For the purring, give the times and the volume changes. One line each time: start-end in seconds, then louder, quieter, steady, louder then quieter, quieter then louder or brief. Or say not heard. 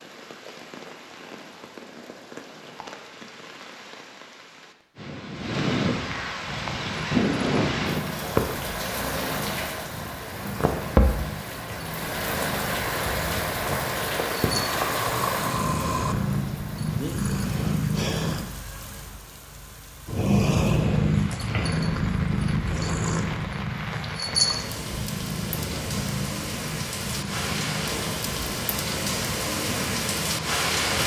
6.5-18.4 louder
20.1-30.8 quieter.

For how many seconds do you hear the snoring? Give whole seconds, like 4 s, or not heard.
2 s.